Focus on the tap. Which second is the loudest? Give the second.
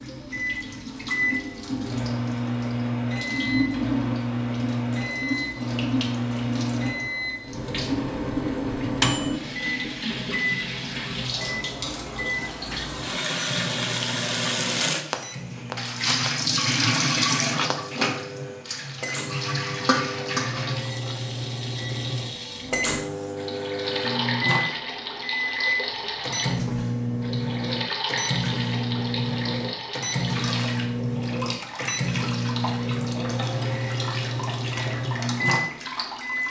17 s.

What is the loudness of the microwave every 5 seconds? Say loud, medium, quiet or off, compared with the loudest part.
loud, loud, medium, medium, loud, loud, loud, loud.